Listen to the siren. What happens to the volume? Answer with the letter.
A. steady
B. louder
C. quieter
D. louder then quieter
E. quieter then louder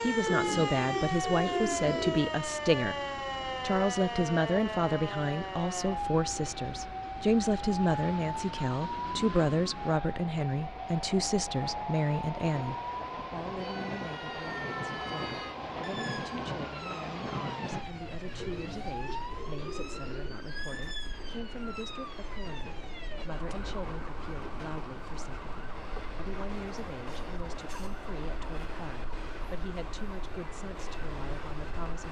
C.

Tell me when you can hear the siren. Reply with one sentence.
You can hear the siren from 0.0 to 32.0 s.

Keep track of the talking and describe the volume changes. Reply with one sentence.
The loudness of the talking goes down.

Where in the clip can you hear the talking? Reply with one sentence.
You can hear the talking from 0.0 to 32.0 s.